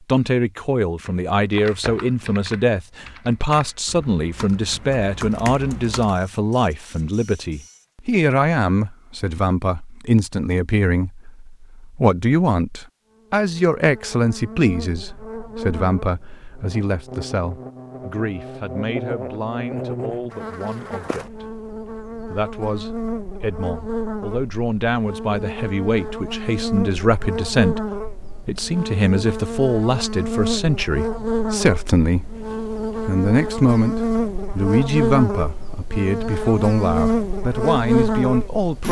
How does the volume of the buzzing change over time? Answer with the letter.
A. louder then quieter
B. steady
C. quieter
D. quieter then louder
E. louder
E.